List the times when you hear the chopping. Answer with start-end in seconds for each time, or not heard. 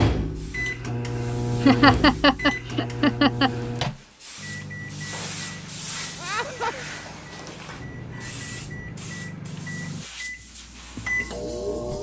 not heard.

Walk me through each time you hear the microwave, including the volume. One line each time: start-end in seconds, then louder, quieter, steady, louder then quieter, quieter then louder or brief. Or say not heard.
0.0-11.9 quieter then louder.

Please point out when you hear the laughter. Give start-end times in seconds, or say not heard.
1.6-3.5, 6.2-6.8.